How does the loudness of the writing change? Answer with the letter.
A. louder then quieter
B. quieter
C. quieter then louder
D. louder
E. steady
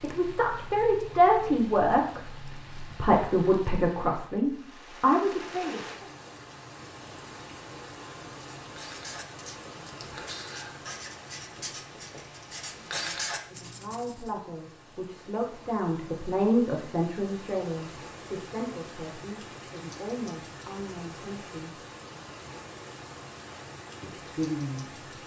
D.